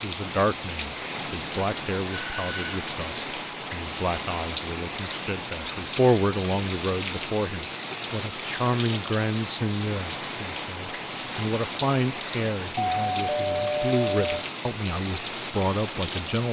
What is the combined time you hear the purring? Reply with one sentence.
You can't hear the purring here.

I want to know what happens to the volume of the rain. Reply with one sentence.
The loudness of the rain stays about the same.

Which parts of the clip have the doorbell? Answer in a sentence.
You can hear the doorbell from 2.1 to 2.9 s and from 12.8 to 14.4 s.